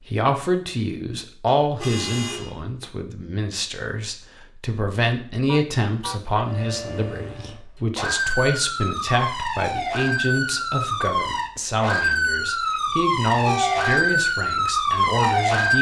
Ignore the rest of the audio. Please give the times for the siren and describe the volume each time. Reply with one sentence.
You can hear the siren from 6.3 to 15.7 s, getting louder.